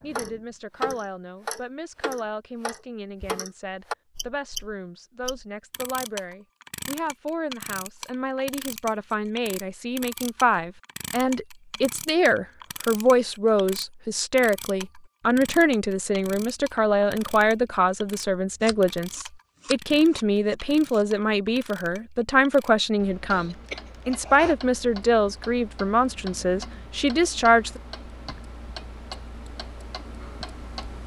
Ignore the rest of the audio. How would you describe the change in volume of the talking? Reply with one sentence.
The volume of the talking goes up.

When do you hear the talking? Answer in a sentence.
You can hear the talking from 0.0 to 27.8 s.